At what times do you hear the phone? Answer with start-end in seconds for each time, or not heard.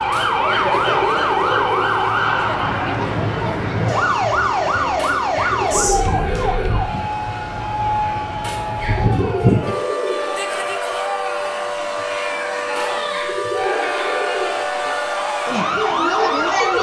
not heard.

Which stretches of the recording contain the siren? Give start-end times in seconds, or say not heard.
0.0-16.7.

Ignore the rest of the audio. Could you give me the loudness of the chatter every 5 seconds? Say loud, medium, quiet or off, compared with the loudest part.
loud, medium, loud, loud.